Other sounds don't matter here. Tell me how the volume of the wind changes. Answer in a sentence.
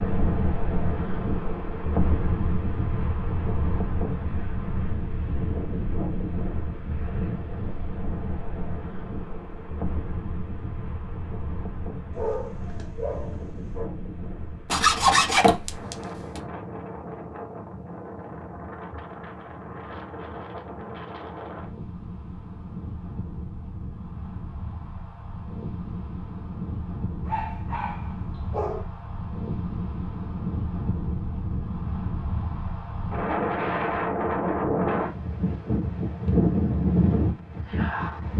The volume of the wind goes down, then up.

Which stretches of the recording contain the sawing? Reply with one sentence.
The sawing can be heard from 14.7 to 16.4 s.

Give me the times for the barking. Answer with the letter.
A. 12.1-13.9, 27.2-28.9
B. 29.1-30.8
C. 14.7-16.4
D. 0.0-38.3
A.